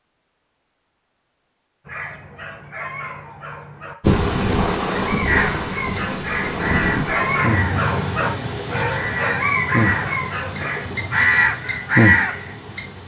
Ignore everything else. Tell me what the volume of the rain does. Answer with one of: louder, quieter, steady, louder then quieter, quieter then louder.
quieter.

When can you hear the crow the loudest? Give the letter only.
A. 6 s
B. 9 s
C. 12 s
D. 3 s
C.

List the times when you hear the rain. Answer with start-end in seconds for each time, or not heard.
4.0-13.0.